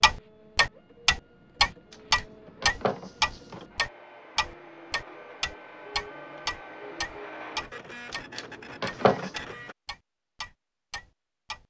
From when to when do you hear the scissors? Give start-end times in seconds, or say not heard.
1.9-3.6, 8.1-9.3.